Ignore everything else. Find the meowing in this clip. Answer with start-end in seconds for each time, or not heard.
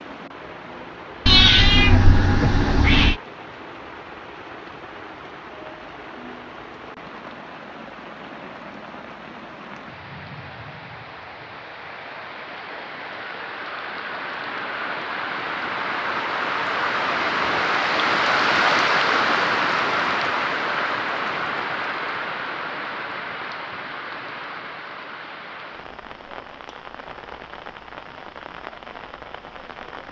1.2-3.1.